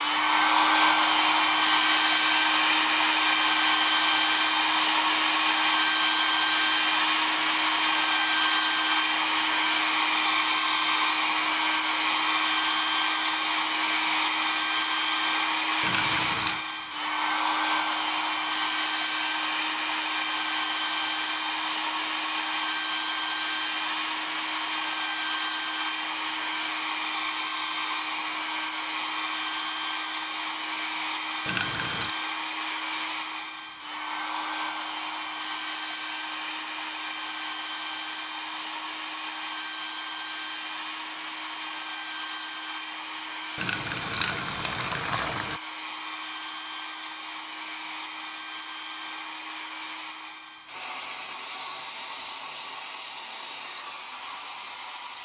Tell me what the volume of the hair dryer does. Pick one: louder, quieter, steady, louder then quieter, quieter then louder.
quieter.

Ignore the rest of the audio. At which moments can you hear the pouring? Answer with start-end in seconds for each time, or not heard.
15.8-16.6, 31.4-32.1, 43.5-45.6.